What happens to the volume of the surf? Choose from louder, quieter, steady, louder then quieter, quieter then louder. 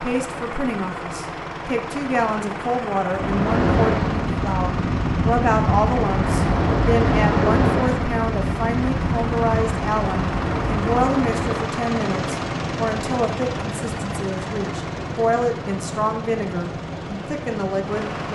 quieter.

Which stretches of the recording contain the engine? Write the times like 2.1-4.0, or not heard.
0.0-18.3.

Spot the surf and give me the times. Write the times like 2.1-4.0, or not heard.
3.0-18.3.